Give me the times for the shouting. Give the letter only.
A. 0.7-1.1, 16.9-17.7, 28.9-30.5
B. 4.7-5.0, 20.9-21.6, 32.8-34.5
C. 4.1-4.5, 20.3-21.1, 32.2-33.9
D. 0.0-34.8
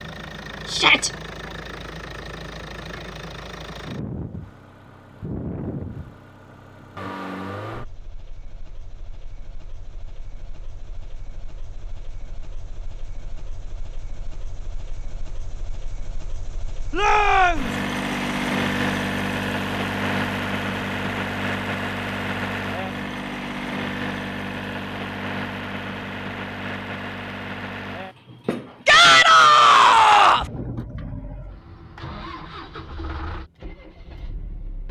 A.